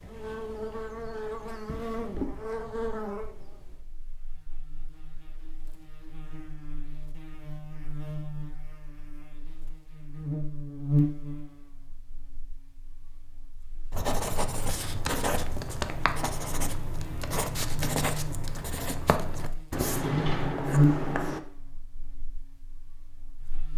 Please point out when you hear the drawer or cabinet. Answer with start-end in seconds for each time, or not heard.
1.6-2.4, 19.9-20.6.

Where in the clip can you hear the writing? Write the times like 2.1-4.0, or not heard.
13.9-21.4.